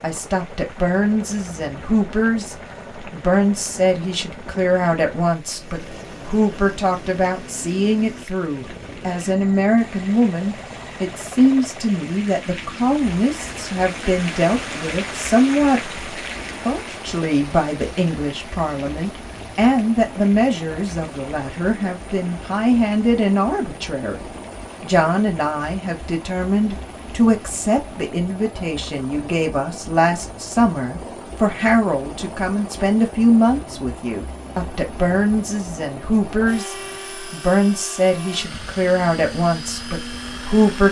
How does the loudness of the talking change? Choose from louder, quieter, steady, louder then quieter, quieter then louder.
steady.